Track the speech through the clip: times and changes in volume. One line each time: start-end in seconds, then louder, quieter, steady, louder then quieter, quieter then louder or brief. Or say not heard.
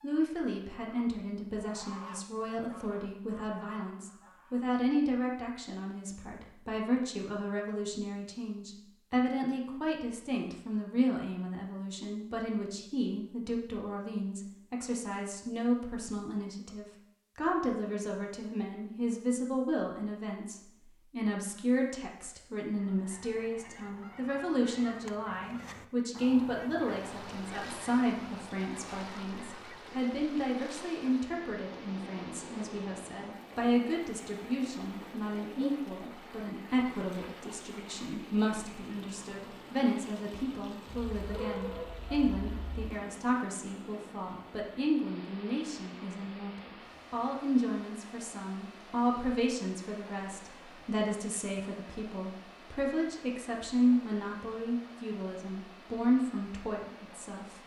0.0-57.6 steady.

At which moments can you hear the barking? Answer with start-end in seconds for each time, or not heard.
40.9-42.9.